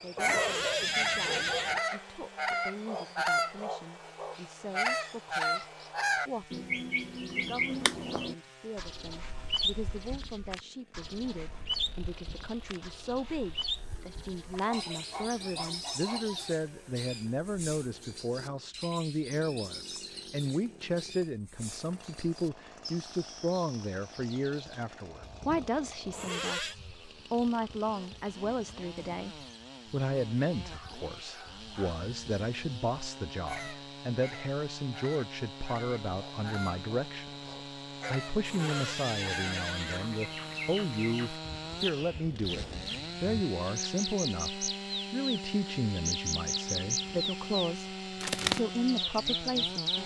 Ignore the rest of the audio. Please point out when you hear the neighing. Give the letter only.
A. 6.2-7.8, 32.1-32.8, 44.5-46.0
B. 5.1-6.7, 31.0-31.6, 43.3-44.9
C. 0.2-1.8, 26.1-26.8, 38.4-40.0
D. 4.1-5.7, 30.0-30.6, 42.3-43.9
C.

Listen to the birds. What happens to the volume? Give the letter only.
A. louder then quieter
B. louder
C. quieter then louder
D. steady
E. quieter
C.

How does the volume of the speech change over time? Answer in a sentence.
The volume of the speech goes up.